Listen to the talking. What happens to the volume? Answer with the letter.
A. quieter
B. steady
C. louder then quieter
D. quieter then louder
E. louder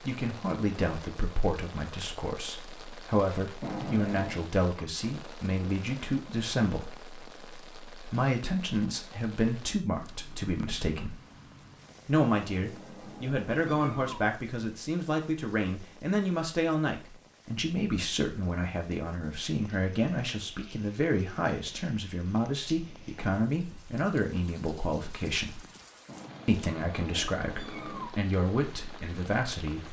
B.